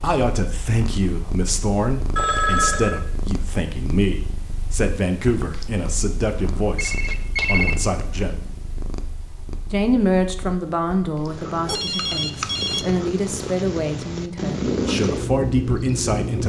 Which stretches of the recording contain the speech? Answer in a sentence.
The speech can be heard from 0.0 to 8.3 s and from 9.7 to 16.4 s.